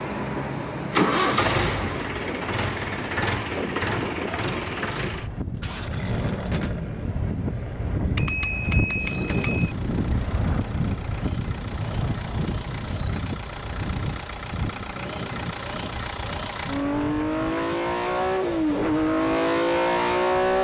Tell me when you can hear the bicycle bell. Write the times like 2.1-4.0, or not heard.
8.2-9.8.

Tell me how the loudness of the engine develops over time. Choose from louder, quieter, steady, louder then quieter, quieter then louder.
quieter then louder.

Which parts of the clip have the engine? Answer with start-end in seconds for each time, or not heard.
0.0-20.5.